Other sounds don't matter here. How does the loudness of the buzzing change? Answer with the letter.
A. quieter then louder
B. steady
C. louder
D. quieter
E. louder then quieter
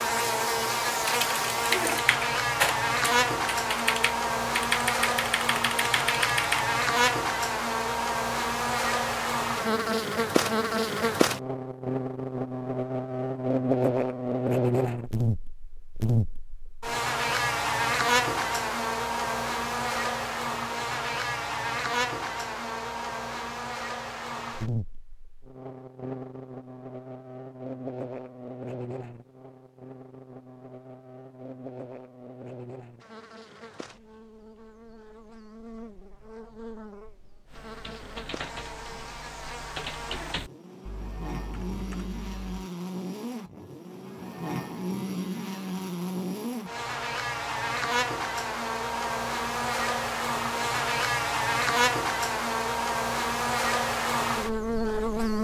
A.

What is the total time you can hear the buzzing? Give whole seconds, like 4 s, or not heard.
55 s.